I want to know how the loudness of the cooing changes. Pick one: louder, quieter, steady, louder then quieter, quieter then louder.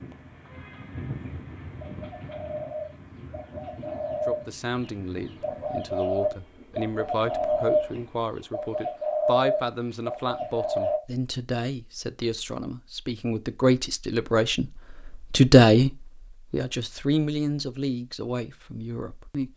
louder.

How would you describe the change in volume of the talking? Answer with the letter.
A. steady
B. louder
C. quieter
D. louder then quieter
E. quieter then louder
D.